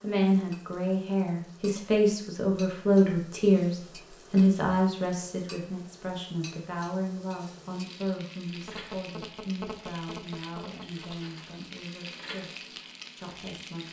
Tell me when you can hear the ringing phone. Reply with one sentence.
You can hear the ringing phone from 8.6 to 11.3 s.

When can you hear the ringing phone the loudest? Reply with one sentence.
The volume of the ringing phone peaks at 10 seconds.